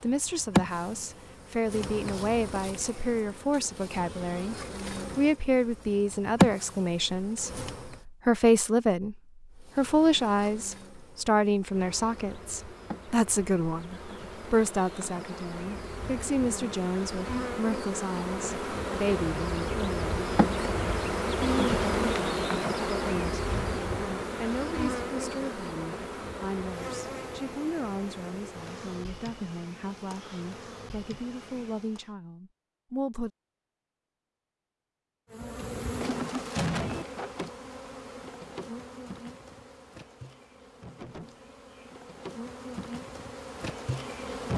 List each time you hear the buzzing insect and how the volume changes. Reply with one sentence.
You can hear the buzzing insect from 0.0 to 8.0 s, getting quieter then louder; from 9.6 to 32.1 s, getting louder then quieter; and from 35.3 to 44.5 s, getting quieter then louder.